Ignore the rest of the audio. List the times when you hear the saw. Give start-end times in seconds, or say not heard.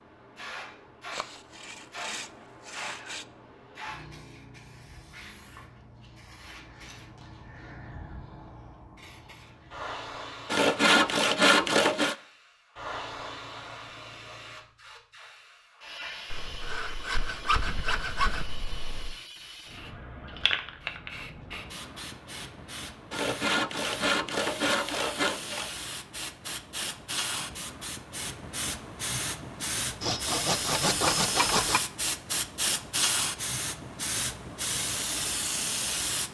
1.1-3.2, 10.5-12.2, 16.3-19.1, 23.1-25.7, 30.0-31.8.